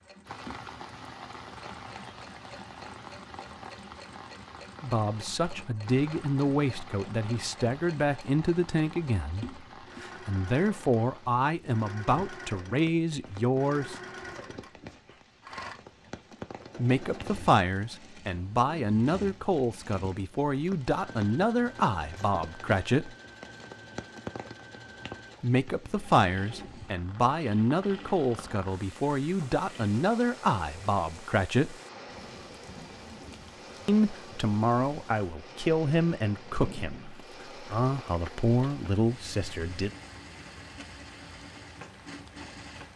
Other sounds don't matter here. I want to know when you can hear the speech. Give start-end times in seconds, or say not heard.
4.8-13.9, 16.8-23.1, 25.4-31.8, 33.9-39.9.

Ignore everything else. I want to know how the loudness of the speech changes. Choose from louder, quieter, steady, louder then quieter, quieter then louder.
steady.